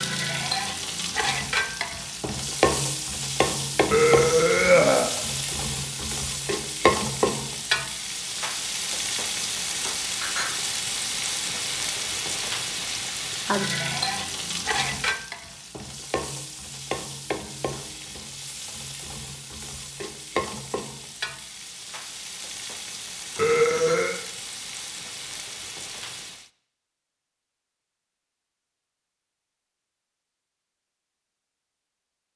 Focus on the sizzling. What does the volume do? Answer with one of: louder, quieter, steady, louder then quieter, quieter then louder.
quieter.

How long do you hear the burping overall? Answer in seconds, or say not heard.
2 s.